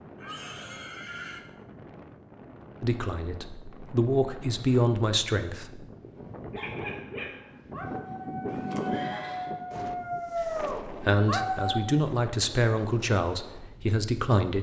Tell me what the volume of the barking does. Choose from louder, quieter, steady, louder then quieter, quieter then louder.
louder.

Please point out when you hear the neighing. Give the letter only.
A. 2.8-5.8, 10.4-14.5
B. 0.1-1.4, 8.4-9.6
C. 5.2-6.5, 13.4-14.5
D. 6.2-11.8
B.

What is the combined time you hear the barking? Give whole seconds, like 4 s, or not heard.
6 s.